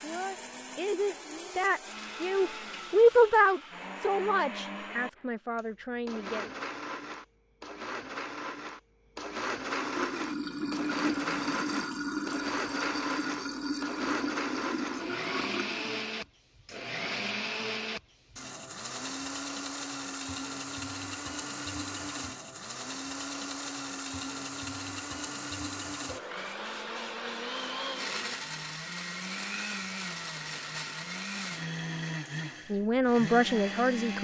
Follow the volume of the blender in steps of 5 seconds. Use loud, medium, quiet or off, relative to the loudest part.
medium, loud, loud, loud, loud, loud, loud.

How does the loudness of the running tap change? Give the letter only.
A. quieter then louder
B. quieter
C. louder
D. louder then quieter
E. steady
E.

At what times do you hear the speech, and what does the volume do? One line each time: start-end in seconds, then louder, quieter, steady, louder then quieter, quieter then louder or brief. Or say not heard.
0.0-6.5 louder then quieter
32.7-34.1 brief.